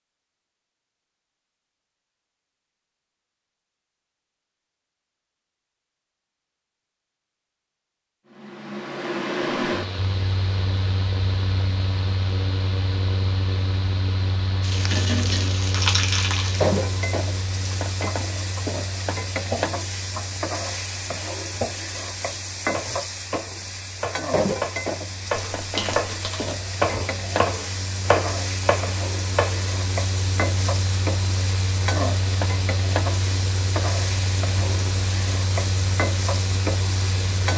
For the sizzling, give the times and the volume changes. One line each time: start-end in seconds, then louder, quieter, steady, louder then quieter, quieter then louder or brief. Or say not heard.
14.6-37.5 steady.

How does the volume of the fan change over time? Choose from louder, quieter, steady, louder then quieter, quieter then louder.
quieter then louder.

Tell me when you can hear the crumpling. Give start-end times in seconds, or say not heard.
15.7-16.6, 25.6-26.6.